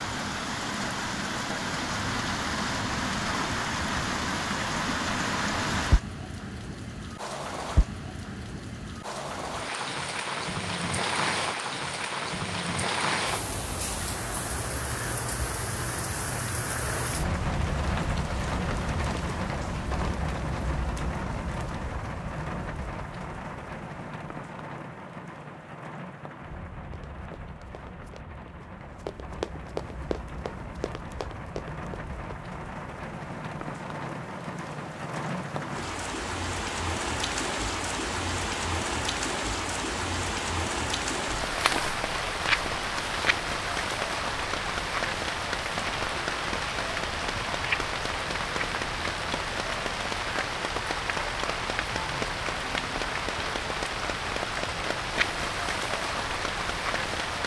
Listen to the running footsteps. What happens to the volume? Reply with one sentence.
The volume of the running footsteps goes up, then down.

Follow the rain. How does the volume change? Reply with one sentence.
The volume of the rain goes down, then up.